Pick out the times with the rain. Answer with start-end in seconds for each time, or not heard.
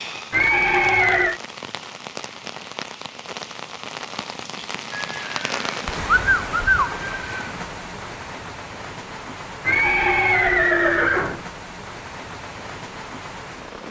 0.0-13.8.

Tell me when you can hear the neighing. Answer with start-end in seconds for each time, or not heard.
0.3-1.4, 4.9-7.5, 9.7-11.4.